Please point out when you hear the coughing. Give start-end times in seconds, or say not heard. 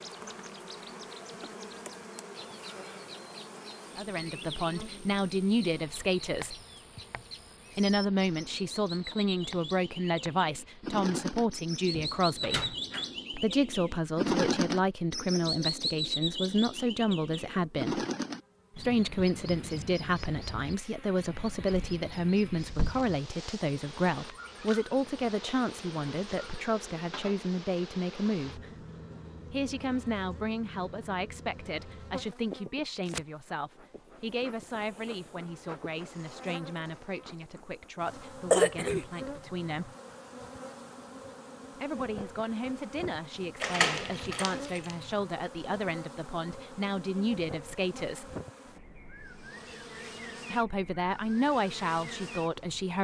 38.5-39.0.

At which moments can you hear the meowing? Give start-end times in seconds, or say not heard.
not heard.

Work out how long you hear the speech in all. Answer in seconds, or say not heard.
42 s.